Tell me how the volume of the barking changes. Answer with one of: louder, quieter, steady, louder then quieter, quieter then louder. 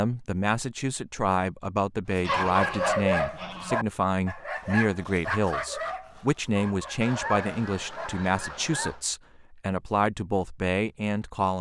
quieter.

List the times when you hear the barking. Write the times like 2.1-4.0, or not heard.
2.1-8.1.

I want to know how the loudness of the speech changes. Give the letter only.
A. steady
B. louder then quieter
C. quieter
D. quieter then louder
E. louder
A.